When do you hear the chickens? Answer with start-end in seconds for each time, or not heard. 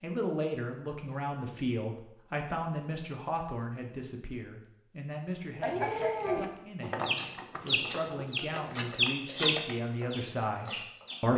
5.6-11.2.